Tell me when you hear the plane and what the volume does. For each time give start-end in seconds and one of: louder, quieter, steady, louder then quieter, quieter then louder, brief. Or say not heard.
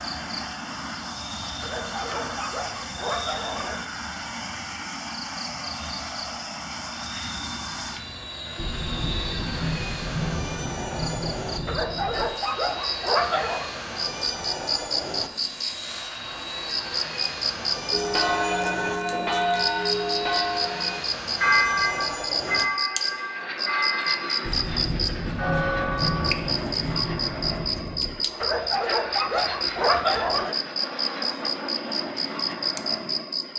0.0-33.5 steady.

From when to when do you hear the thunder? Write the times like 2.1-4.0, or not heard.
8.6-12.2, 24.4-28.1.